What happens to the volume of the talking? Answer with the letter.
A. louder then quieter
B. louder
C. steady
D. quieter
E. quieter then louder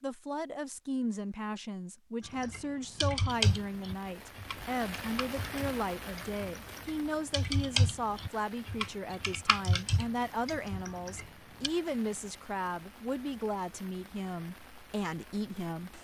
C.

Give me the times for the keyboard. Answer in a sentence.
You can hear the keyboard from 2.4 to 11.7 s.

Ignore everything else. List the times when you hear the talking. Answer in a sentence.
You can hear the talking from 0.0 to 15.9 s.